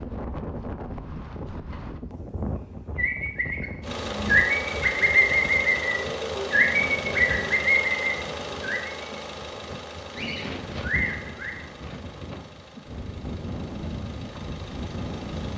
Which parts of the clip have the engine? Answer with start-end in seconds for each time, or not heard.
3.8-15.5.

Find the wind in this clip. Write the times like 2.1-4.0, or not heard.
0.0-15.5.